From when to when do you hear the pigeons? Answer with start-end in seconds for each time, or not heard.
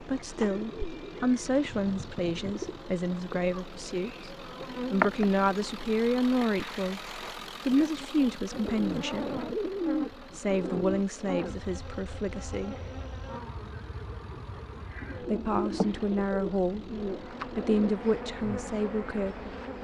0.3-2.8, 8.5-11.1, 15.0-17.9.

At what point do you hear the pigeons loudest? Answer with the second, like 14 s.
10 s.